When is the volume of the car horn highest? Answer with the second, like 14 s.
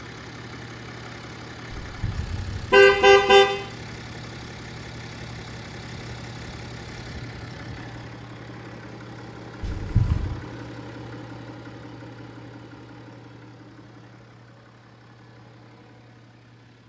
3 s.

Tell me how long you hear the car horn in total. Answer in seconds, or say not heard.
2 s.